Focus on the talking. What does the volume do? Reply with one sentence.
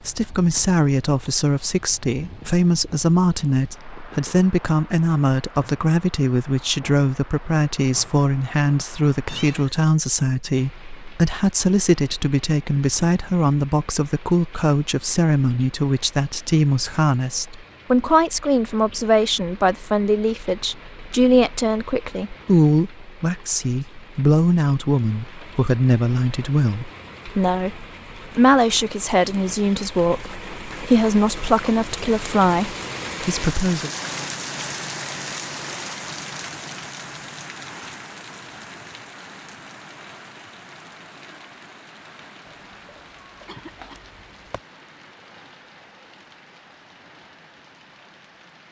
The loudness of the talking stays about the same.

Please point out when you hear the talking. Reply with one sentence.
You can hear the talking from 0.1 to 33.9 s.